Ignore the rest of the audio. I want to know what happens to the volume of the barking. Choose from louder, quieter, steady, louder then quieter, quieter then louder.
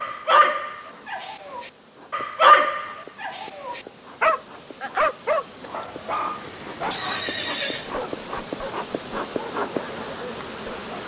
louder then quieter.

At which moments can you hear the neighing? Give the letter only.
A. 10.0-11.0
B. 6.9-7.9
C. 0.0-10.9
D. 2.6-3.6
B.